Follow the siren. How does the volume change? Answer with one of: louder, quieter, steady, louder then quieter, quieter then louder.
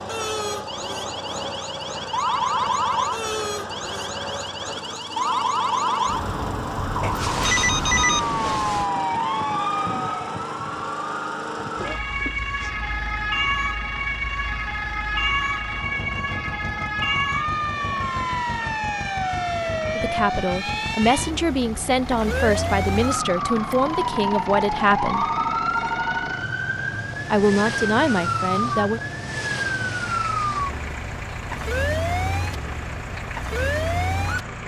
steady.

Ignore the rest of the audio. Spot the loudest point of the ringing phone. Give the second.
8 s.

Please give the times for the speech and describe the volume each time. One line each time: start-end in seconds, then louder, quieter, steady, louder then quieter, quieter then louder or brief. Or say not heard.
19.9-25.2 steady
27.3-29.0 brief.